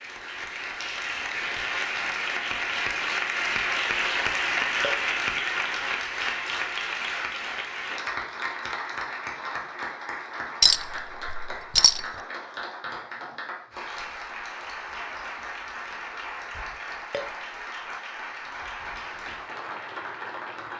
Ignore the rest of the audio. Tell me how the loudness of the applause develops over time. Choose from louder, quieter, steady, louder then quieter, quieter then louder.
quieter.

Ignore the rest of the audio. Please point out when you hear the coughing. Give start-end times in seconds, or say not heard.
not heard.